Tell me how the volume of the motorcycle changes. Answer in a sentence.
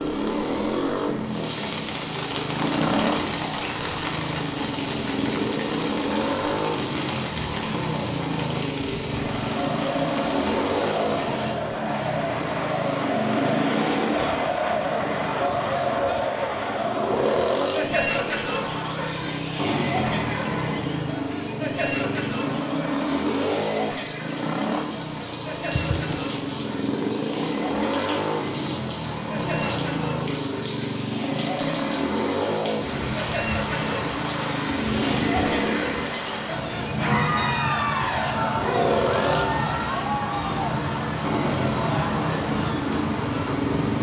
The volume of the motorcycle stays about the same.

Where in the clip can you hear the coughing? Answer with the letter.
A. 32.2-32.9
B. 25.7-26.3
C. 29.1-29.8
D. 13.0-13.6
B.